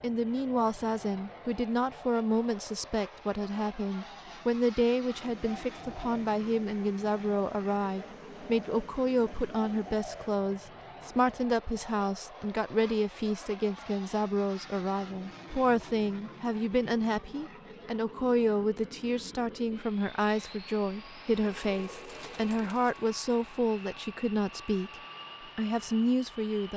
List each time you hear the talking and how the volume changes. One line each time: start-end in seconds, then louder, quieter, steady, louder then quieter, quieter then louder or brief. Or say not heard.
0.0-24.9 steady
25.6-26.7 brief.